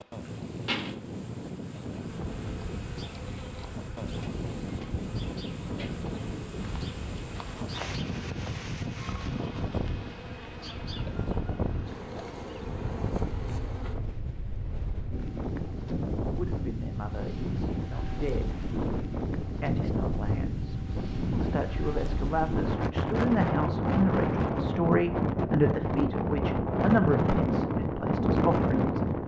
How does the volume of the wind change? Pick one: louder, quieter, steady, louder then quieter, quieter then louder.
louder.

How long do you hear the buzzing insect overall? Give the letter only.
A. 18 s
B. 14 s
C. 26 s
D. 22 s
B.